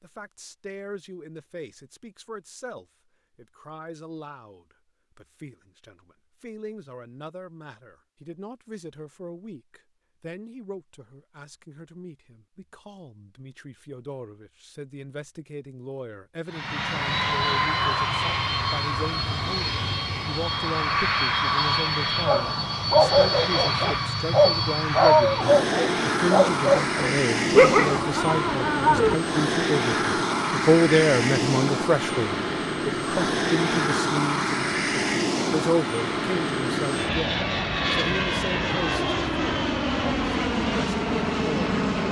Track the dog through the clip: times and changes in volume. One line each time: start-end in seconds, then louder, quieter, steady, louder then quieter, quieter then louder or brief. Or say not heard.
22.2-29.1 steady.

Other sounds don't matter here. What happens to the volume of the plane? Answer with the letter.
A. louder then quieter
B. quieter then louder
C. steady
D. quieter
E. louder
C.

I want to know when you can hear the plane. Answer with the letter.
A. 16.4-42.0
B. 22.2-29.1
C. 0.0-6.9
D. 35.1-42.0
A.